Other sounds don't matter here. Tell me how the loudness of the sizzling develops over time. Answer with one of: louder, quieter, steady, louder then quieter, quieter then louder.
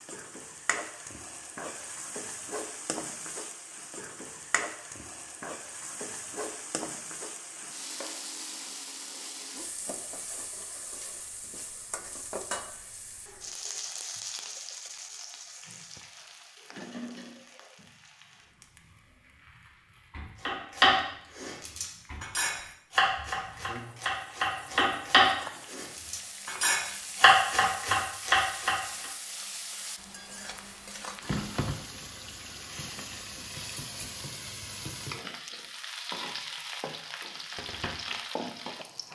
quieter then louder.